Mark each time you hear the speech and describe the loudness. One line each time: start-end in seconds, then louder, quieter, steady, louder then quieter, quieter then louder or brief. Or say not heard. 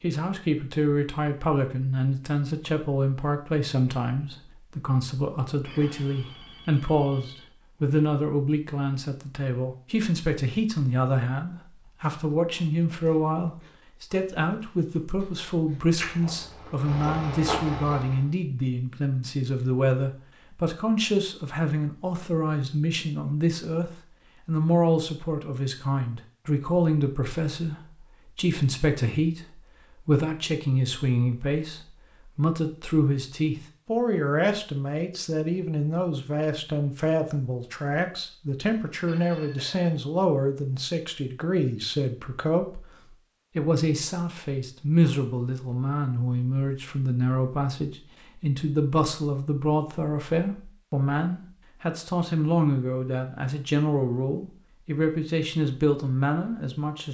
0.0-57.0 steady.